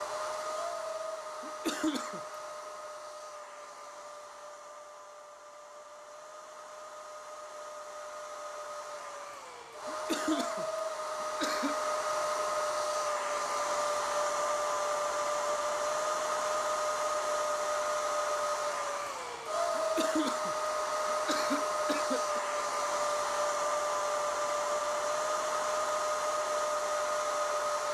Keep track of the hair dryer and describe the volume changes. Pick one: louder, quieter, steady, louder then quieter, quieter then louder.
louder.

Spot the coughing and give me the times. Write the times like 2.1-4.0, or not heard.
1.4-2.2, 9.8-11.8, 19.8-22.4.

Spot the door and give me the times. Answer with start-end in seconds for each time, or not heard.
not heard.